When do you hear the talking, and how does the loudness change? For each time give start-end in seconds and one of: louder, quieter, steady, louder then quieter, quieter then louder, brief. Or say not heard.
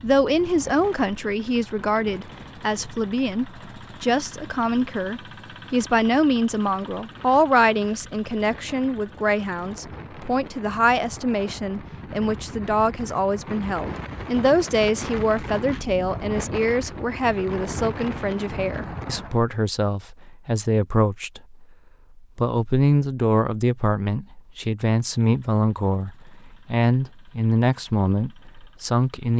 0.0-29.3 steady.